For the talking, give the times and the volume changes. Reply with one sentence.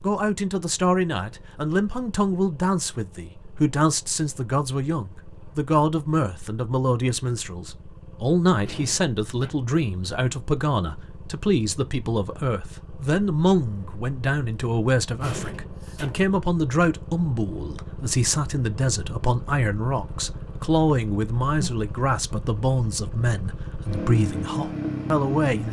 You can hear the talking from 0.0 to 25.6 s, at a steady volume.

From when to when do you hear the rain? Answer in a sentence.
The rain can't be heard in this clip.